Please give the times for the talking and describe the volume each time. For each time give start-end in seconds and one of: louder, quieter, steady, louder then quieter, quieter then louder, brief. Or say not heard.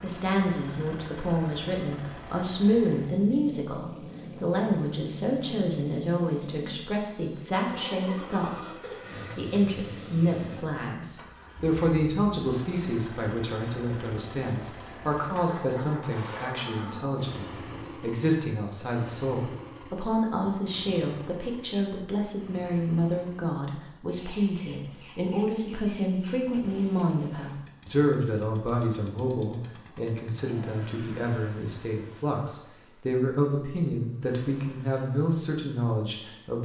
0.0-36.6 steady.